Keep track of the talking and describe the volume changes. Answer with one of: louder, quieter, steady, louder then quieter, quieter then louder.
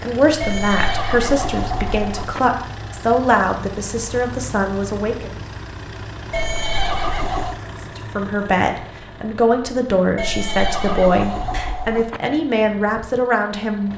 steady.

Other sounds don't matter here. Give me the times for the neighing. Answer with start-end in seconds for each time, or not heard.
0.4-2.4, 6.3-7.6, 10.2-12.2.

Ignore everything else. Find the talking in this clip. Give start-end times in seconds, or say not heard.
0.0-5.3, 7.8-13.9.